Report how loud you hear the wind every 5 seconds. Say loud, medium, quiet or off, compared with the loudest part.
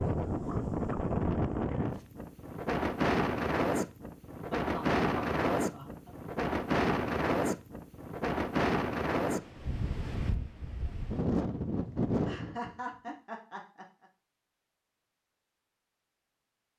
loud, loud, loud, off.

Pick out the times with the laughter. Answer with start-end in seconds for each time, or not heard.
4.5-6.1, 12.2-14.1.